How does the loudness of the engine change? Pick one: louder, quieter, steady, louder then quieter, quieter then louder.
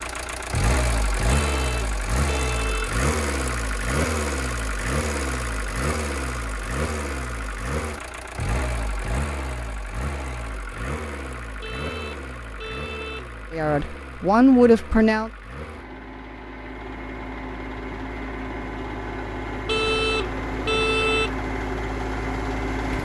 quieter then louder.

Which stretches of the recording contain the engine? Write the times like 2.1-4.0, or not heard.
0.0-23.0.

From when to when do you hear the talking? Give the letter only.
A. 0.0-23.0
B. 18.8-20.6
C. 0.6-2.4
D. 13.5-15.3
D.